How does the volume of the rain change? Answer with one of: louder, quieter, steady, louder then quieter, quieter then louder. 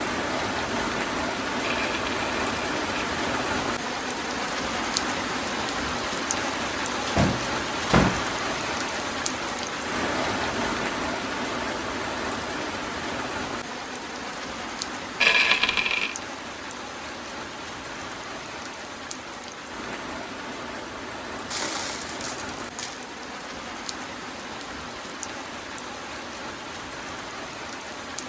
quieter.